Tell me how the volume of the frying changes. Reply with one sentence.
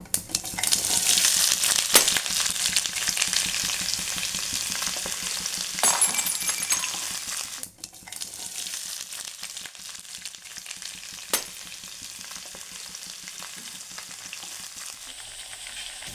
The loudness of the frying goes down.